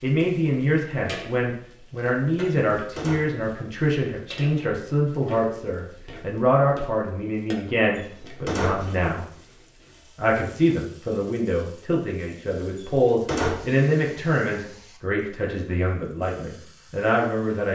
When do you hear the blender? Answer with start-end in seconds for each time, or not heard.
not heard.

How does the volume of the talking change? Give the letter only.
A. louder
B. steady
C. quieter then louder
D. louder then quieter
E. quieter
B.